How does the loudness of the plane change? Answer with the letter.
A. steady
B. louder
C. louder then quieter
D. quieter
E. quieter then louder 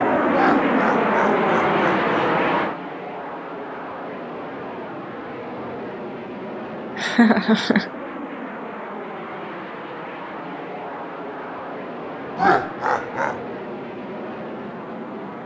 D.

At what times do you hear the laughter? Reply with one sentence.
You can hear the laughter from 0.3 to 2.3 s, from 7.0 to 7.9 s and from 12.3 to 13.3 s.